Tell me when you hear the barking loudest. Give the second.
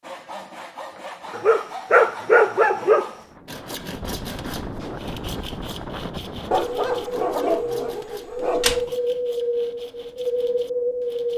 2 s.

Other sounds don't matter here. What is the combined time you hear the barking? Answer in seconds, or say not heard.
4 s.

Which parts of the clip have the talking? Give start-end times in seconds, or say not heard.
not heard.